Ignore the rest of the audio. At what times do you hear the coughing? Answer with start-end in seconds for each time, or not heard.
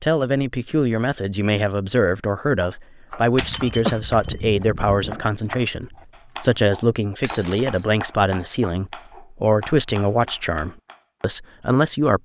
3.4-5.3.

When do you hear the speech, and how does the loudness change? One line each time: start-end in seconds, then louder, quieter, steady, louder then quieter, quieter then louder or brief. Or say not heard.
0.0-12.2 steady.